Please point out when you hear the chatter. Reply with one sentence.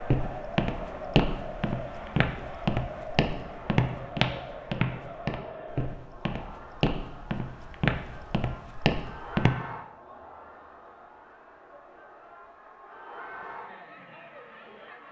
The chatter can be heard from 0.0 to 15.0 s.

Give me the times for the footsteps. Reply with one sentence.
You can hear the footsteps from 0.0 to 9.6 s.